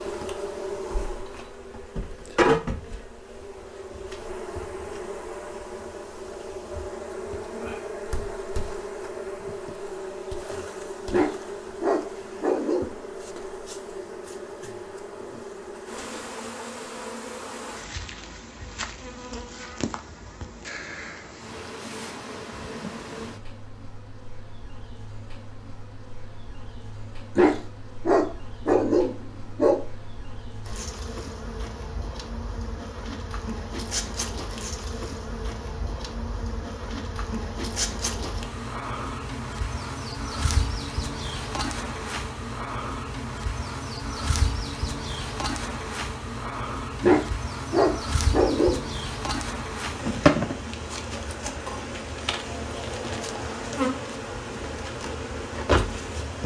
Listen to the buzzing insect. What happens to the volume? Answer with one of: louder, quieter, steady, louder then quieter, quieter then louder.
quieter then louder.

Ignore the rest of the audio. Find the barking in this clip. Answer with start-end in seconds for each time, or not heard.
11.1-12.9, 27.4-29.8, 47.0-48.9.